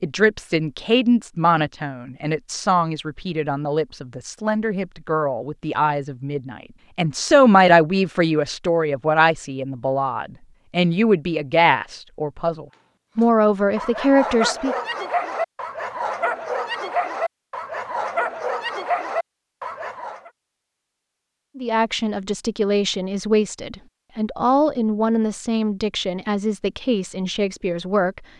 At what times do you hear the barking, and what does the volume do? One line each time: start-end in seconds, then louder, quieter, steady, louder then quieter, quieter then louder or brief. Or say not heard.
13.8-20.3 steady.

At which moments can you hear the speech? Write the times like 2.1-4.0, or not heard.
0.0-14.8, 21.6-28.2.